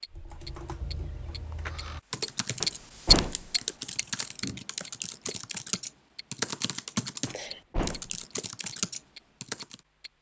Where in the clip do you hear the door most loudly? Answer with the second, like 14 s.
3 s.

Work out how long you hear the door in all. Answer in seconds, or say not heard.
2 s.